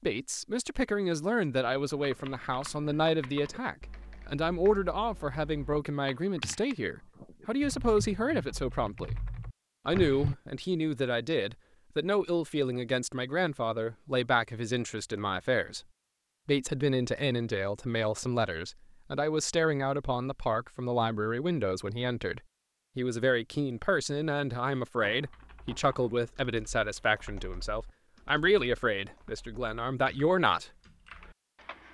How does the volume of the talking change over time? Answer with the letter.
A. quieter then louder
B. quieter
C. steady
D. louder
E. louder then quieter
C.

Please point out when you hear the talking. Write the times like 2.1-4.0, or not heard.
0.0-9.2, 9.8-15.8, 16.4-30.7.